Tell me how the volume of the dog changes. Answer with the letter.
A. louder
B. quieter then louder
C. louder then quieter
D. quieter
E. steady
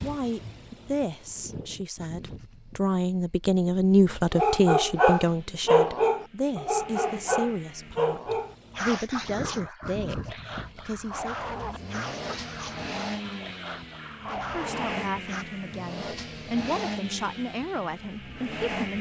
D.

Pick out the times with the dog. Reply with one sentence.
You can hear the dog from 4.3 to 15.4 s.